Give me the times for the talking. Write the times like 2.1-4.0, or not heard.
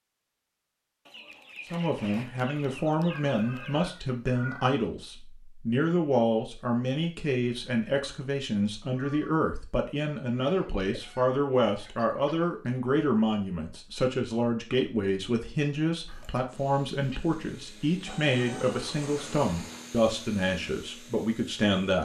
1.7-21.9.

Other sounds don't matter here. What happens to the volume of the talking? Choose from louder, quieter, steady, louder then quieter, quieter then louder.
steady.